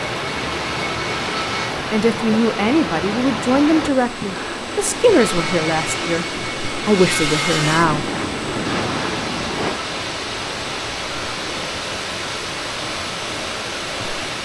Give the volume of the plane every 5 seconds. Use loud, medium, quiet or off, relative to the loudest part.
loud, loud, off.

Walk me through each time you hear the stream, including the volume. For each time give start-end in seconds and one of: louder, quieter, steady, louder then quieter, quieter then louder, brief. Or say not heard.
0.0-14.4 steady.